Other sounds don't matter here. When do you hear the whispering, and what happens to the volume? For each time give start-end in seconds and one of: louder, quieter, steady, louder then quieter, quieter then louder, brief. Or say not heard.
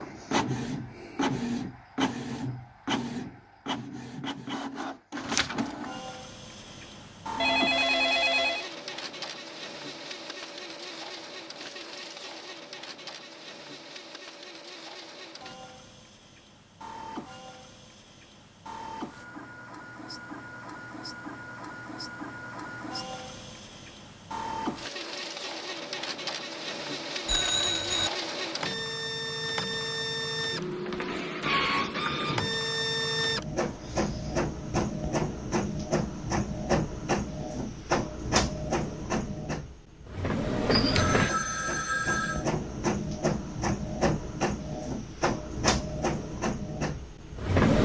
not heard.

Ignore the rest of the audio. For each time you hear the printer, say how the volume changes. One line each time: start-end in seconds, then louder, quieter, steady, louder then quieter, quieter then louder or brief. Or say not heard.
0.0-47.7 quieter then louder.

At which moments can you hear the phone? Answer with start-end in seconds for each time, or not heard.
7.3-8.7, 27.2-28.1, 40.7-42.5.